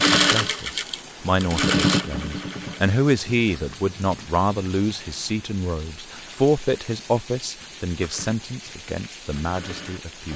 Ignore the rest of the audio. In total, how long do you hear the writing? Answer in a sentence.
The writing can't be heard in this clip.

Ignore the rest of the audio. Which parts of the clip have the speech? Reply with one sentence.
You can hear the speech from 0.0 to 10.3 s.